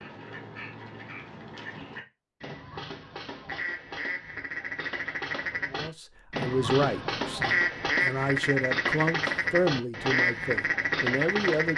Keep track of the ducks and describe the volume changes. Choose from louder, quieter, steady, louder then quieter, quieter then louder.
louder.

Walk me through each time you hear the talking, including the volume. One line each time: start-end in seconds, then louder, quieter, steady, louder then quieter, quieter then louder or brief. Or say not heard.
5.7-11.7 quieter then louder.